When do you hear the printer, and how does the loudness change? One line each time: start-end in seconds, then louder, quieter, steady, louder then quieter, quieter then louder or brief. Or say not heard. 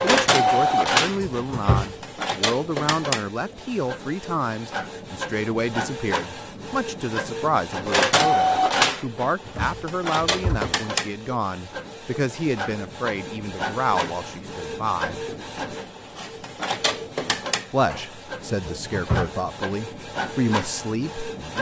0.0-21.5 quieter.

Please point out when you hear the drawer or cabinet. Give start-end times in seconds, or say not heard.
0.4-1.9, 9.4-10.8, 17.9-19.4.